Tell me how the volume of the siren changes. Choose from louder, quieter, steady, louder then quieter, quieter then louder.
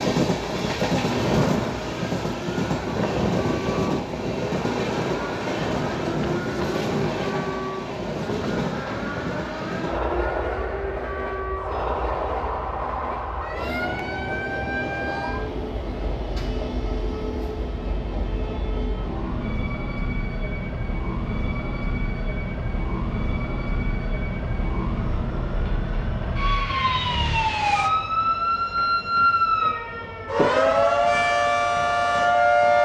louder.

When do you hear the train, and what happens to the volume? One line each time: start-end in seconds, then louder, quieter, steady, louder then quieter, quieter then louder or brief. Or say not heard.
0.0-32.8 quieter.